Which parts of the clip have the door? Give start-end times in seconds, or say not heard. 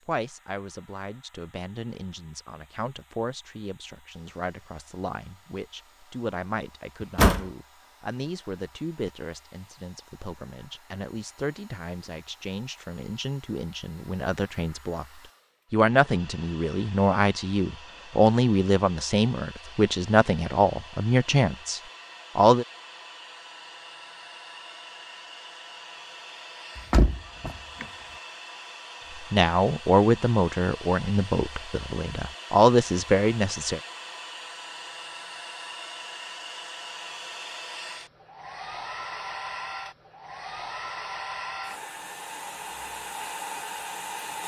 7.0-7.5, 26.8-27.9.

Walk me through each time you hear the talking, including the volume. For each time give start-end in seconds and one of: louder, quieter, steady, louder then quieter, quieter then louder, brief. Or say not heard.
0.1-22.6 louder
29.3-33.8 quieter then louder.